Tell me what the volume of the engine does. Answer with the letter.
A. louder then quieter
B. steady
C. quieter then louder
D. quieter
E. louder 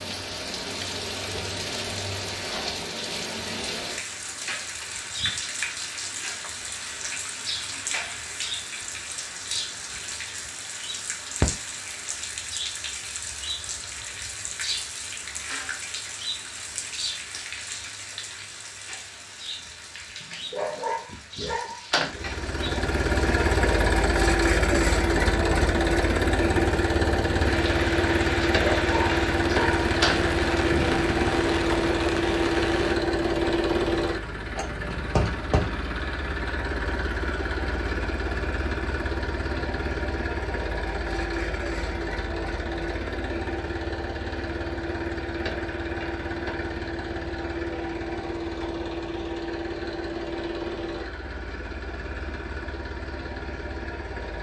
D.